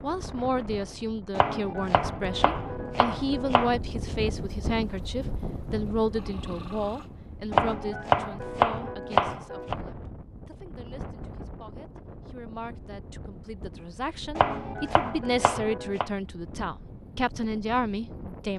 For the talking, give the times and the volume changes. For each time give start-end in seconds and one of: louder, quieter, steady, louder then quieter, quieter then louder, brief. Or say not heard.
0.0-18.5 quieter then louder.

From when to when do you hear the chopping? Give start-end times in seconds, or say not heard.
1.3-3.8, 7.5-9.8, 14.3-16.1.